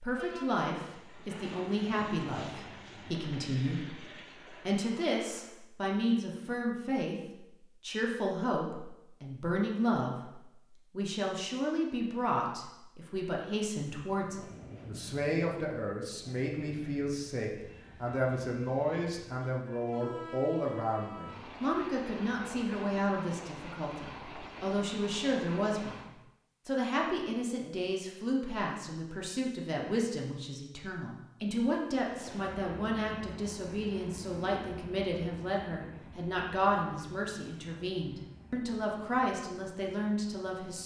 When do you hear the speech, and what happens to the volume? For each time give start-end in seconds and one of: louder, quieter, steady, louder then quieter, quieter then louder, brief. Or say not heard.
0.0-40.8 steady.